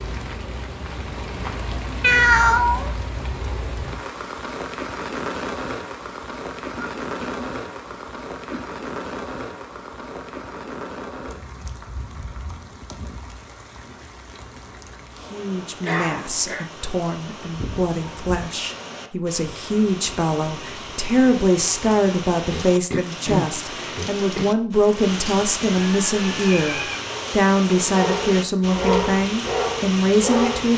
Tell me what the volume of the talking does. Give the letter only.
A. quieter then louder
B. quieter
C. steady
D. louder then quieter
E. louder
E.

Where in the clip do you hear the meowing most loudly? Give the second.
2 s.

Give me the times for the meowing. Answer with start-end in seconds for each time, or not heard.
2.0-2.9, 17.5-18.4, 25.8-27.0.